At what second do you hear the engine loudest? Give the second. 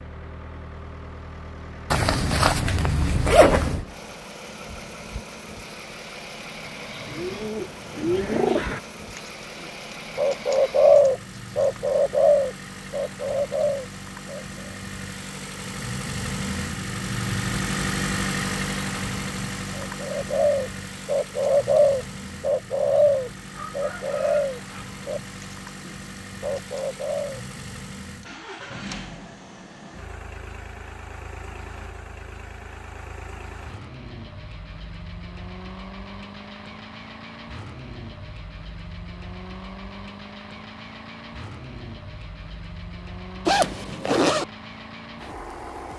18 s.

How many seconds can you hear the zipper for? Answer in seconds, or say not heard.
3 s.